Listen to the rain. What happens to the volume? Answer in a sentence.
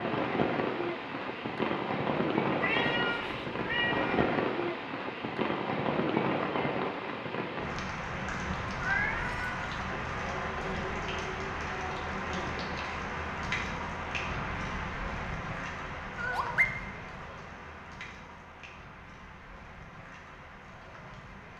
The loudness of the rain goes down.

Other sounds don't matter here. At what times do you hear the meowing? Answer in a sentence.
You can hear the meowing from 2.6 to 4.3 s, from 8.8 to 9.6 s and from 16.1 to 16.6 s.